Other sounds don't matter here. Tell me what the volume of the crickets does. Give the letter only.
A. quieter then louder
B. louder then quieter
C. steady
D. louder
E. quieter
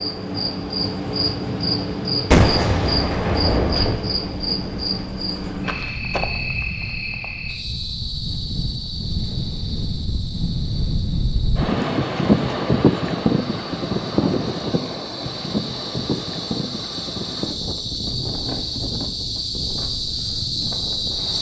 A.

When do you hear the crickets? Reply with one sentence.
You can hear the crickets from 0.0 to 21.3 s.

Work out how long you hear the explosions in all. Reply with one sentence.
You can hear the explosions for 2 seconds altogether.